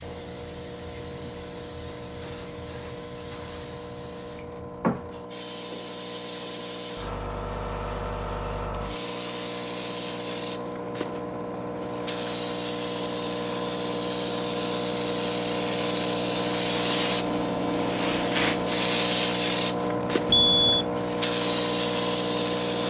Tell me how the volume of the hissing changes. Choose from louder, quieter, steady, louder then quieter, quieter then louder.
louder.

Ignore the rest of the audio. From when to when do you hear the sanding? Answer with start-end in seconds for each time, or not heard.
not heard.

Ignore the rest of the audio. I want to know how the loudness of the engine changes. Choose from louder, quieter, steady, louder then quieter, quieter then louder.
louder.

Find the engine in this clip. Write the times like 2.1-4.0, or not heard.
0.0-22.8.